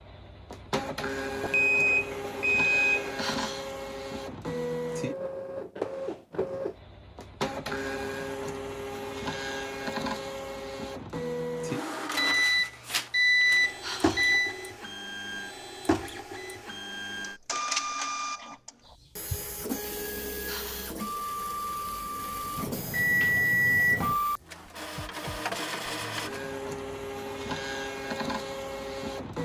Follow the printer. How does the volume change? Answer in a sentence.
The volume of the printer stays about the same.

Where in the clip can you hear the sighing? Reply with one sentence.
The sighing can be heard from 3.1 to 3.8 s, from 13.8 to 14.3 s and from 20.4 to 21.1 s.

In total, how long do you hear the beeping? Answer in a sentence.
The beeping can be heard for 6 seconds in total.